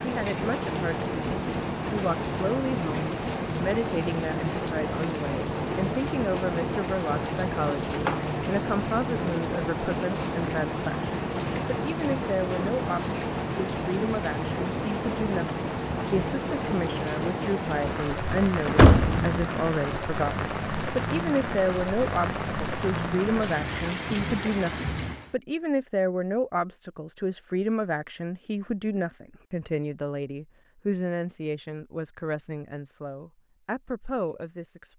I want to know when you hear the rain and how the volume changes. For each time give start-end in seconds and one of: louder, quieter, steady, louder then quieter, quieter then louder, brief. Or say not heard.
0.0-25.4 steady.